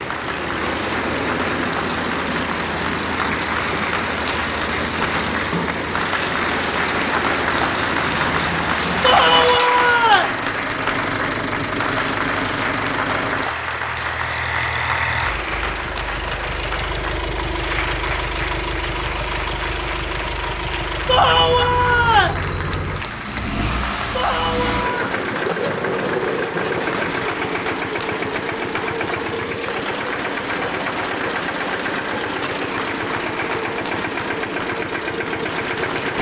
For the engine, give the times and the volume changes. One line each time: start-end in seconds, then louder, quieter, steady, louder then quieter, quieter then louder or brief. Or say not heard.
0.0-36.1 steady.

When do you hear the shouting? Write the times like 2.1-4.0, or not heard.
9.0-10.3, 21.1-22.4, 24.1-25.1.